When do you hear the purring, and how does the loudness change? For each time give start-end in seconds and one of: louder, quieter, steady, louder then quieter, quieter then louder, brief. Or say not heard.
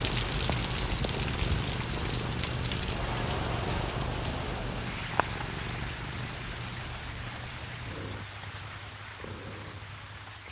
0.0-10.4 quieter.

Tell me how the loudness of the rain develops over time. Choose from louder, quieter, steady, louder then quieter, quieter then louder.
quieter.